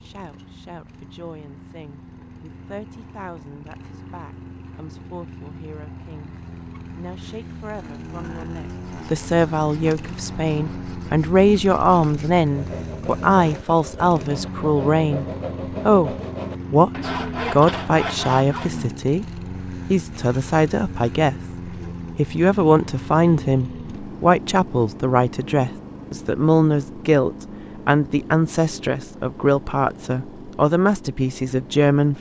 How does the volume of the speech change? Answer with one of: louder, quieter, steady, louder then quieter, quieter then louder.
louder.